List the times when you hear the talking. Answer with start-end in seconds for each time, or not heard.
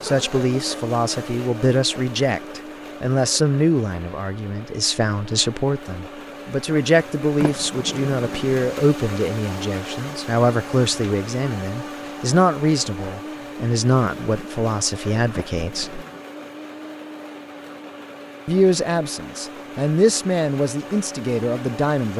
0.0-16.1, 18.4-22.1.